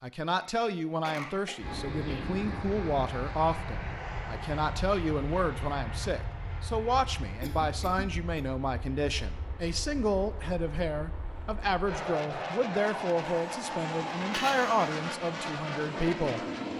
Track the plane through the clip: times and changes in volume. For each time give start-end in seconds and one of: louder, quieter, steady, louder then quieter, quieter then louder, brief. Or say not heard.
1.6-16.7 quieter then louder.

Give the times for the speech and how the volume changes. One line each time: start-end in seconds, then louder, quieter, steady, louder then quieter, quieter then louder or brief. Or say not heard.
0.0-16.4 steady.